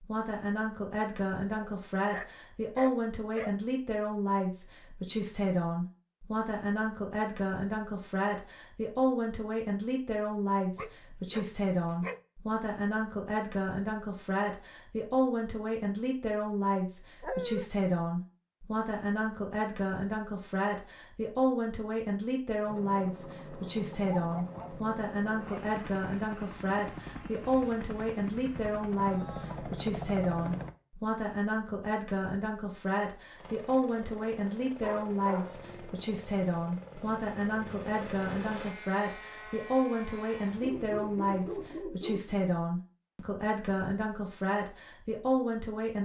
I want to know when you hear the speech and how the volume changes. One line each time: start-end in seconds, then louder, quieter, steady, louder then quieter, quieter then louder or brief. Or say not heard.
0.0-45.9 steady.